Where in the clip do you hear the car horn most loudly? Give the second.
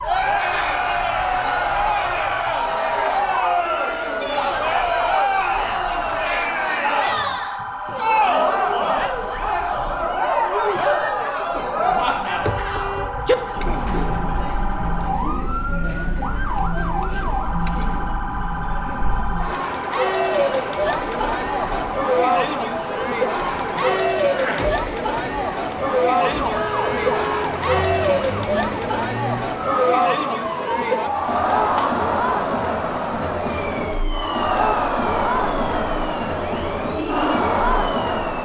13 s.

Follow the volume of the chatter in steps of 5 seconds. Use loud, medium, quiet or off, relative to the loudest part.
loud, loud, loud, medium, loud, loud, loud, loud.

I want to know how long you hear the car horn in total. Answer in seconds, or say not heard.
2 s.